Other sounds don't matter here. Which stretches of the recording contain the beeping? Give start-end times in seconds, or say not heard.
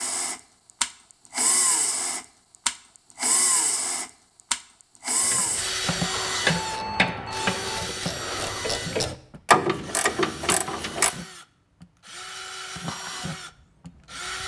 6.2-7.8.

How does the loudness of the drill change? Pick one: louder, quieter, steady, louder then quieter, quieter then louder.
quieter.